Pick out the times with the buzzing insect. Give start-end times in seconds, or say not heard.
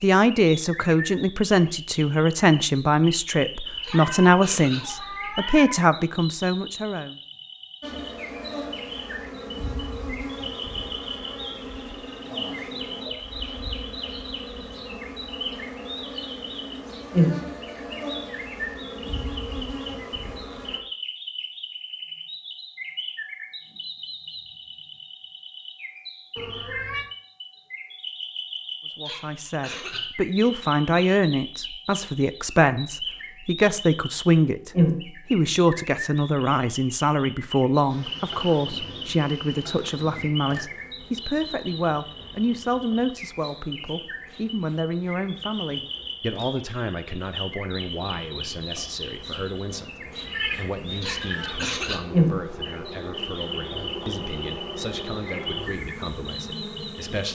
7.8-20.8, 37.9-57.3.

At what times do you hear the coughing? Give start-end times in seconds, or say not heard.
3.8-4.8, 29.1-30.0, 51.0-52.0.